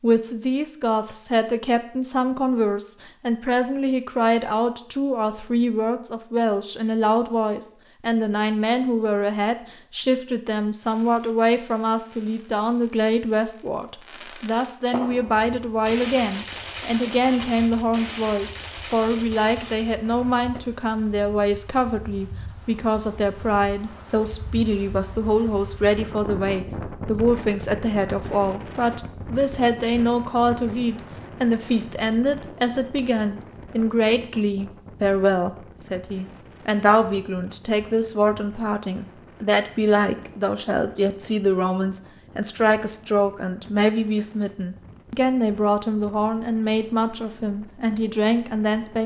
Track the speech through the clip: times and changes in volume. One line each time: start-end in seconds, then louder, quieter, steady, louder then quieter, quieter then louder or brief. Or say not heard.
0.0-49.0 steady.